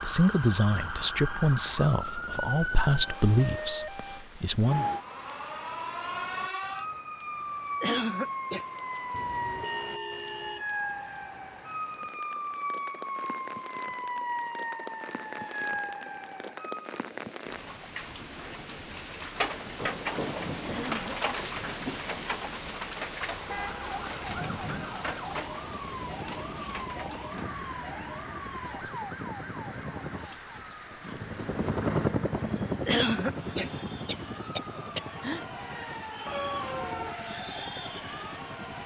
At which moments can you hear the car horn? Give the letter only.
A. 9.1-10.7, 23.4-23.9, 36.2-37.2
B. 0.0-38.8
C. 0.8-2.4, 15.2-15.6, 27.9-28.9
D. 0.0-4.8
A.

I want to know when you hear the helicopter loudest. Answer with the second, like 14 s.
32 s.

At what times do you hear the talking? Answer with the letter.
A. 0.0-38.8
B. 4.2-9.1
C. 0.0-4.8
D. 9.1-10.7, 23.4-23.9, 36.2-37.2
C.